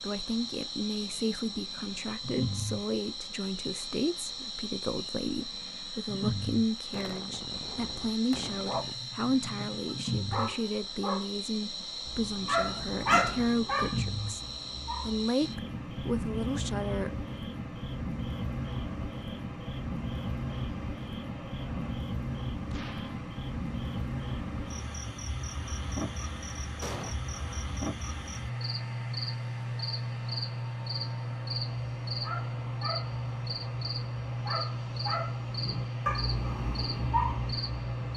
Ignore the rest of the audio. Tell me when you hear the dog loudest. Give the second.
13 s.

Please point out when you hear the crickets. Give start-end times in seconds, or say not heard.
0.0-38.1.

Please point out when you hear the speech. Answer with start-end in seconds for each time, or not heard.
0.0-14.4, 15.0-17.1.